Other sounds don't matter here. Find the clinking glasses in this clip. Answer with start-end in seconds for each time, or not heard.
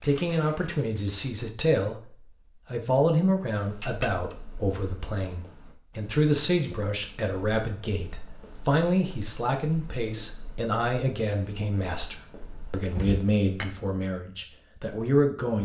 3.8-4.3, 12.9-13.7.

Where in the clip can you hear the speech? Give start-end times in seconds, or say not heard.
0.0-15.6.